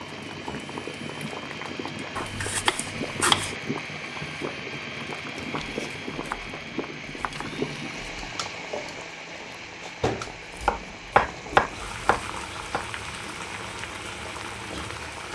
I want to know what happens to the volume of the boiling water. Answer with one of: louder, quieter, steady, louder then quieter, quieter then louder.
steady.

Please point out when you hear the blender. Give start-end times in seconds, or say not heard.
0.0-15.3.